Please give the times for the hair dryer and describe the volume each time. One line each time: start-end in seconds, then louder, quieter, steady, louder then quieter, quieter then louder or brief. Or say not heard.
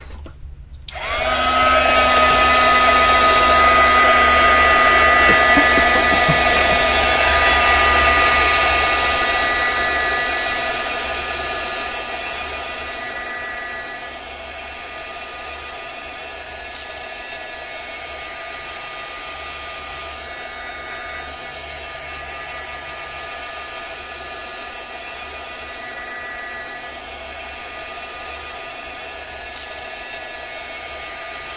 0.0-31.5 quieter.